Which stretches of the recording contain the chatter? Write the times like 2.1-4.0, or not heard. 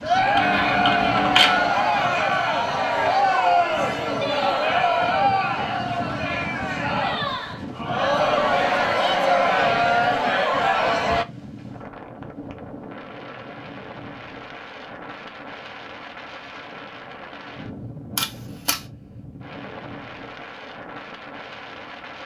0.0-11.2.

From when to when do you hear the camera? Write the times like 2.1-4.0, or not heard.
0.3-1.8, 18.1-18.9.